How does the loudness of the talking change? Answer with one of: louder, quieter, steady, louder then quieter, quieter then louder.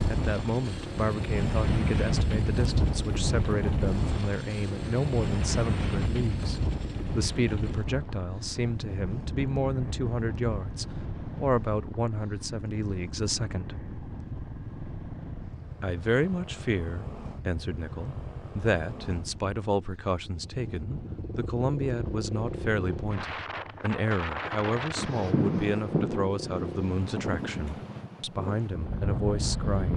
steady.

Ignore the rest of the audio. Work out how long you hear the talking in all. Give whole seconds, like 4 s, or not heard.
28 s.